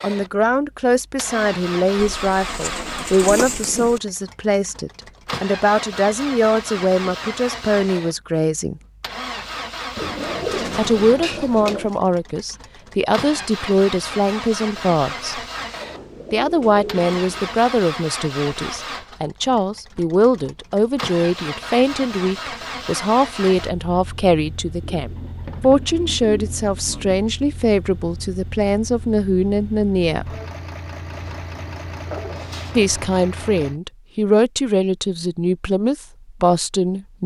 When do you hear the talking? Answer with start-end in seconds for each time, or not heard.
0.0-8.8, 10.8-15.4, 16.3-30.4, 32.8-37.2.